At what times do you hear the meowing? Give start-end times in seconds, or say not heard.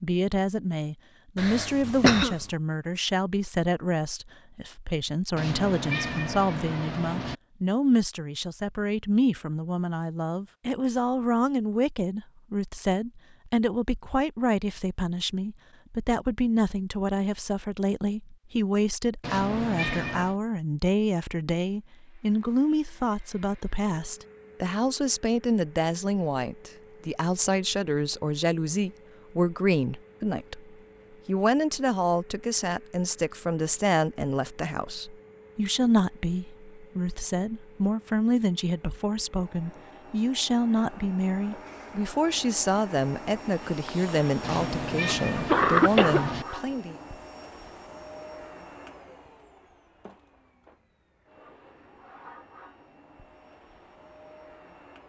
5.3-7.3, 19.2-20.4, 44.4-46.5.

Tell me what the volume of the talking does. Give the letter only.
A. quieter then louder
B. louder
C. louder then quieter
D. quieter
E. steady
E.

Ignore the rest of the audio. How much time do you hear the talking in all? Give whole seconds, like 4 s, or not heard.
47 s.